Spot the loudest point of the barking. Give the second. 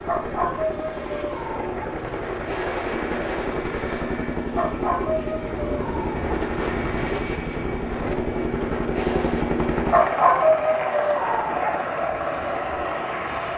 10 s.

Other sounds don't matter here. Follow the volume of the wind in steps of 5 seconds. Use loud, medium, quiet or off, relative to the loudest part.
loud, loud, medium.